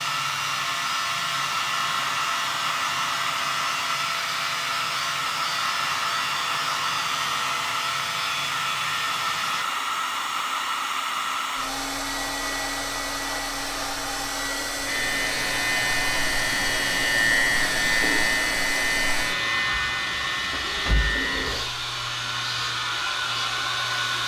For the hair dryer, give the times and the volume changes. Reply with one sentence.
You can hear the hair dryer from 0.0 to 24.2 s, at a steady volume.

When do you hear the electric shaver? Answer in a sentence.
The electric shaver can be heard from 0.0 to 9.7 s and from 14.8 to 24.2 s.